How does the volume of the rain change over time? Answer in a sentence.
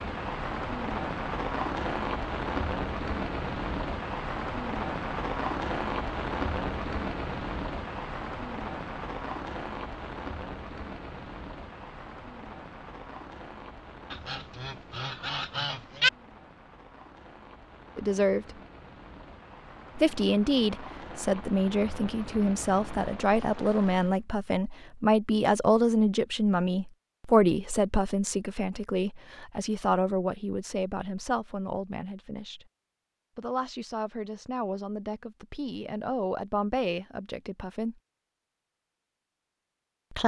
The loudness of the rain goes down, then up.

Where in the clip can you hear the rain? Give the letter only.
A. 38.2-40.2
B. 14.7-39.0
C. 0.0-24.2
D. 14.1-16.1
C.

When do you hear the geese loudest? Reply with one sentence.
The loudest moment of the geese is at 16 seconds.